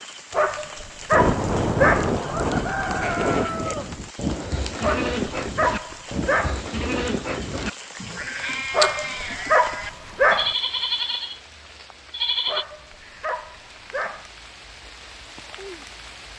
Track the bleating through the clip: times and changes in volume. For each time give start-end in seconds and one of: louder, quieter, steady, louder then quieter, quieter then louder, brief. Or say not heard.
3.0-12.7 steady.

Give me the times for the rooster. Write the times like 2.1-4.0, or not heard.
1.1-4.1.